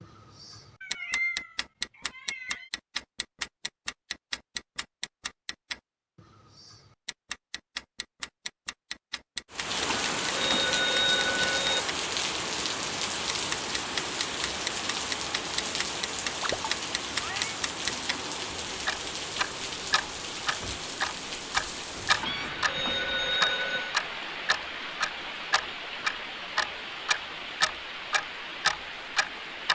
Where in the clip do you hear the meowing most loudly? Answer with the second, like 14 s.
1 s.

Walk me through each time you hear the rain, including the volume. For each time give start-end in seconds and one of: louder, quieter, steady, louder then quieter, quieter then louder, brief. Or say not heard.
9.5-29.7 quieter.